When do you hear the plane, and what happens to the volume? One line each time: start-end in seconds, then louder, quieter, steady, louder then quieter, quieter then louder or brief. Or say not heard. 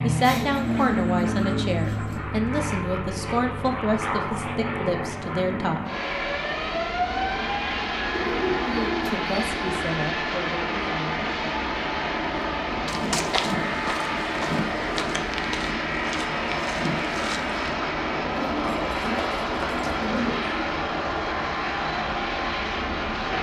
0.0-23.3 steady.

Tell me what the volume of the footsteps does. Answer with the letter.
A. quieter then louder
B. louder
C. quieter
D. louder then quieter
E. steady
A.